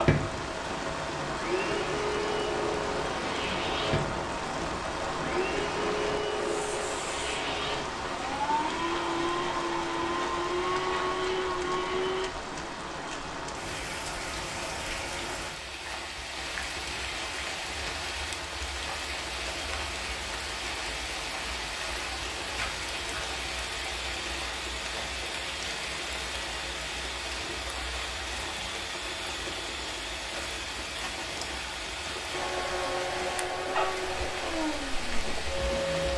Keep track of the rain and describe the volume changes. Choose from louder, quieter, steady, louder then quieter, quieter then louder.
steady.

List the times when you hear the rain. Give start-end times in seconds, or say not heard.
0.0-36.1.